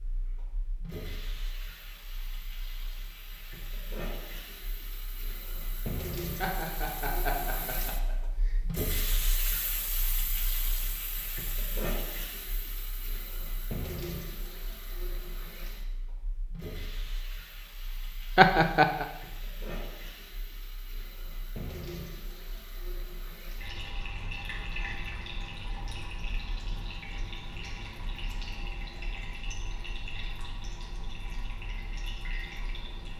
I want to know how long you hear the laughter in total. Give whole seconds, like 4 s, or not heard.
3 s.